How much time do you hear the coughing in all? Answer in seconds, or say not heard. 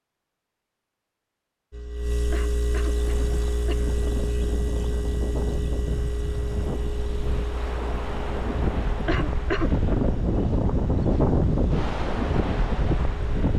2 s.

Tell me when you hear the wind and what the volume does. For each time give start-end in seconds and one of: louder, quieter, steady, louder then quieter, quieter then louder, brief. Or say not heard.
2.9-13.5 louder.